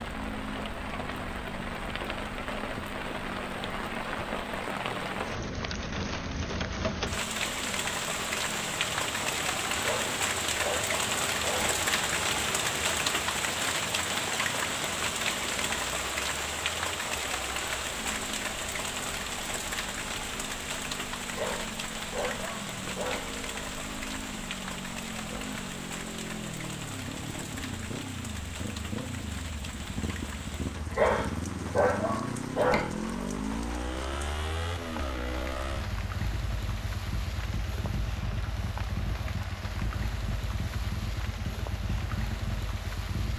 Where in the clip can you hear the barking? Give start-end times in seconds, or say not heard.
9.8-11.8, 21.3-23.3, 30.9-32.9.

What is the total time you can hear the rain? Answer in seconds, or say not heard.
43 s.